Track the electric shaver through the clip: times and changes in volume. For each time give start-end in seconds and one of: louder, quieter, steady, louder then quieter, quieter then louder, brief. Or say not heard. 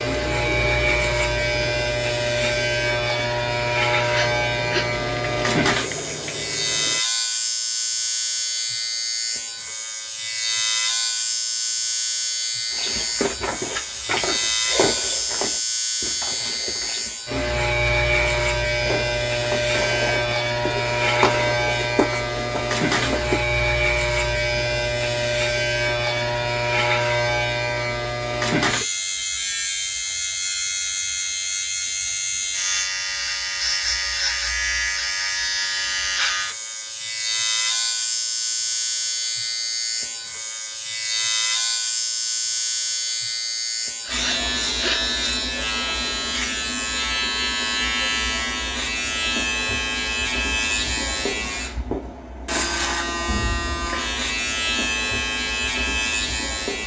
0.0-56.8 steady.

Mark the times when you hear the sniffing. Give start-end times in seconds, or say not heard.
4.0-4.8, 44.0-45.0.